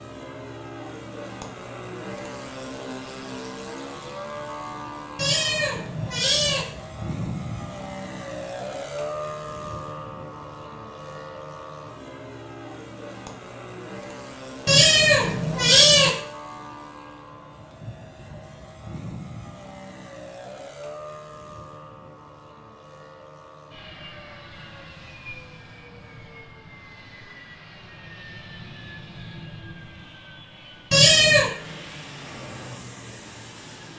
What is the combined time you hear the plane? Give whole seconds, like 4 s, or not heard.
34 s.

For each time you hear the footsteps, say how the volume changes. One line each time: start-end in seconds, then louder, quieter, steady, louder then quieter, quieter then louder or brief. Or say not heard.
not heard.